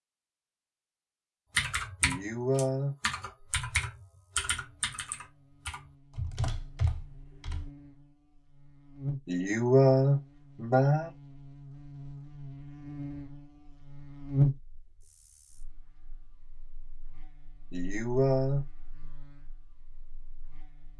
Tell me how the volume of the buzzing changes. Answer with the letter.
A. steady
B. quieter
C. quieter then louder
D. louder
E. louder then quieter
E.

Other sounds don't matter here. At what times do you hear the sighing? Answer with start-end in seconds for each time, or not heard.
2.0-3.0, 9.2-11.1, 17.7-18.6.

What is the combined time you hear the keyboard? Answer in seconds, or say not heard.
6 s.